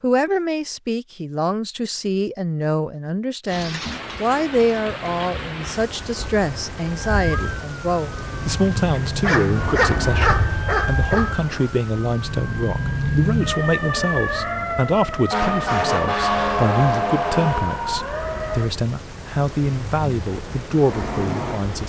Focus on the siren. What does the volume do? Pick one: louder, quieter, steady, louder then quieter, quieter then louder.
louder.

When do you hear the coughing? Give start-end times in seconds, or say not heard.
not heard.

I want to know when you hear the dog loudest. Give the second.
10 s.